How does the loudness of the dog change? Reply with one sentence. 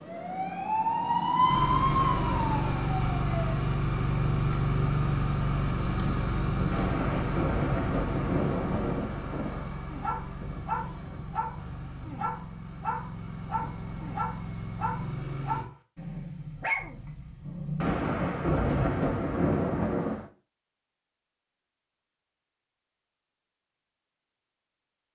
The volume of the dog stays about the same.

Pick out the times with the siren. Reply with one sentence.
You can hear the siren from 0.0 to 3.6 s.